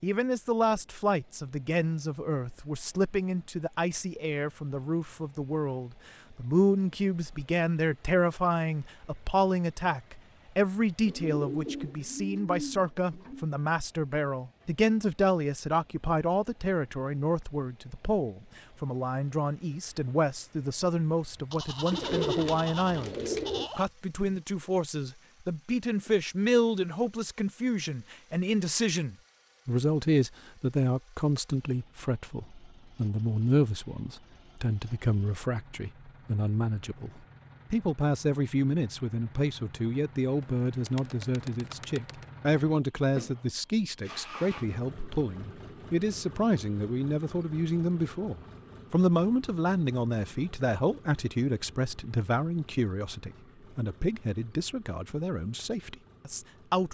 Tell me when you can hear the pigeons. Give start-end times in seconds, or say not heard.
11.1-13.5, 21.9-23.7, 40.4-42.2.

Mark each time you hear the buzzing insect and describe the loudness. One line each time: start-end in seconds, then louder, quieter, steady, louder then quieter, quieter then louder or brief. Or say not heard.
not heard.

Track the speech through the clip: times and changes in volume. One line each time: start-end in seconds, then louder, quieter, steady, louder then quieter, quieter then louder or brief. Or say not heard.
0.0-56.9 steady.